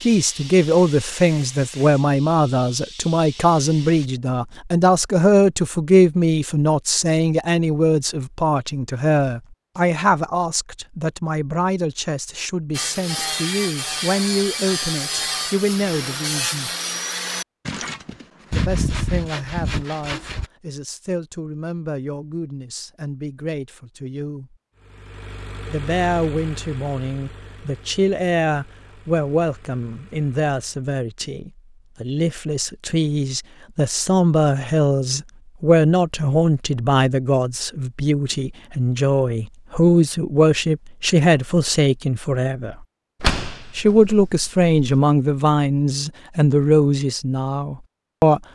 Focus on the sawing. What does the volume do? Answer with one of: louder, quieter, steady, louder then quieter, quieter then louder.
steady.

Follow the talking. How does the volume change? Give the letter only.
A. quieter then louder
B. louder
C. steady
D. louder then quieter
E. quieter
A.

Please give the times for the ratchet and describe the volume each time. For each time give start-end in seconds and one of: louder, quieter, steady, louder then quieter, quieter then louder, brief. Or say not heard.
not heard.